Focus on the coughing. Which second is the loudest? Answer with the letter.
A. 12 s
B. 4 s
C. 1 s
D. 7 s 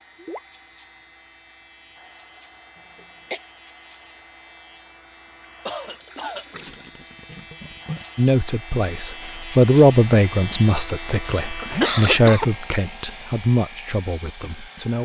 A.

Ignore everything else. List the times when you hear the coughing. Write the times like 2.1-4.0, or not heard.
2.8-3.4, 5.7-6.5, 11.4-12.4.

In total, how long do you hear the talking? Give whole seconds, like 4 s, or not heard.
7 s.